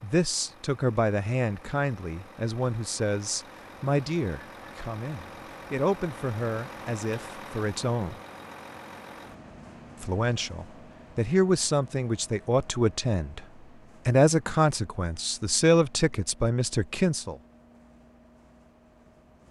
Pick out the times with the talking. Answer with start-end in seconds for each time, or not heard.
0.0-8.2, 10.0-13.4, 14.1-17.4.